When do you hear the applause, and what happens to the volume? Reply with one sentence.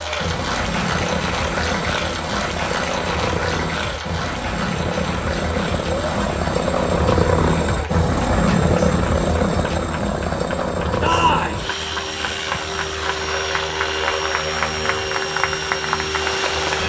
You can hear the applause from 0.0 to 16.8 s, getting quieter then louder.